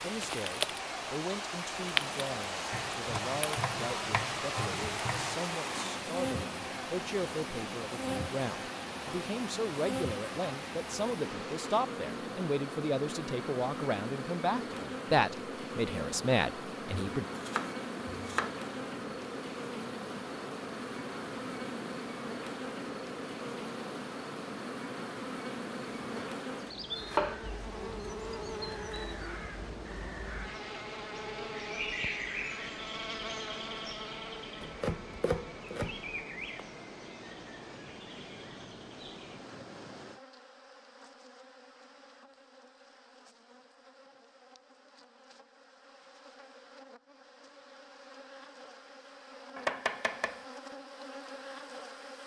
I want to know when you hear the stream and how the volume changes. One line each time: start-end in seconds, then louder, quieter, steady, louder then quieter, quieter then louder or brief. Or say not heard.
0.0-40.2 quieter.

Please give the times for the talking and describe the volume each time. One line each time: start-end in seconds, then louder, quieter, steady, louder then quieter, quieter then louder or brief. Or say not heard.
0.0-17.2 louder.